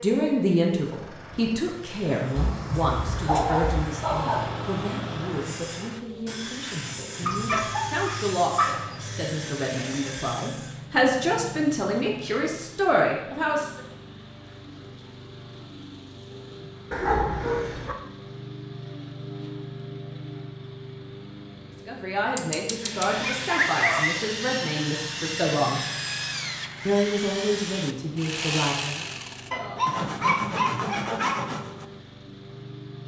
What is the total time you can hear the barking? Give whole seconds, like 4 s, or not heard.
9 s.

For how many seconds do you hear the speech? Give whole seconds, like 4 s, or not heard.
20 s.